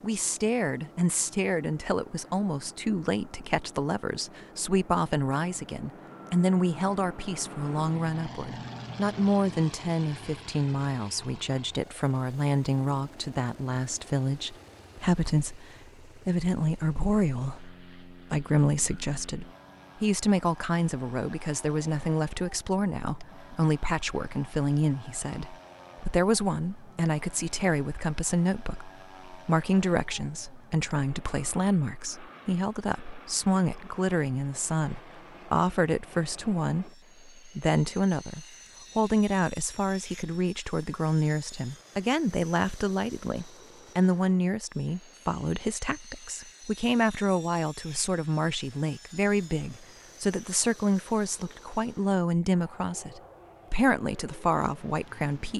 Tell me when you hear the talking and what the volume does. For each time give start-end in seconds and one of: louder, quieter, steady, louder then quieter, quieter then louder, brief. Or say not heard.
0.0-55.5 steady.